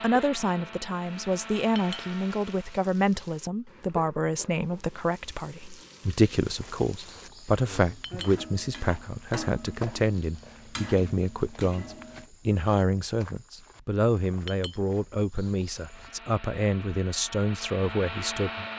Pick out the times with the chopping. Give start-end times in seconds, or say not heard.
not heard.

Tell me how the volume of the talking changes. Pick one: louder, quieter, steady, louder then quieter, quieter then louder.
steady.